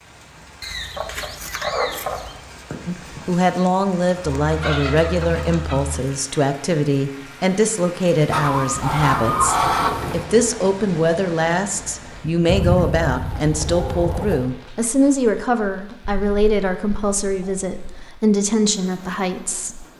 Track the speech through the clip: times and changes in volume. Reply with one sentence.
You can hear the speech from 2.9 to 19.9 s, at a steady volume.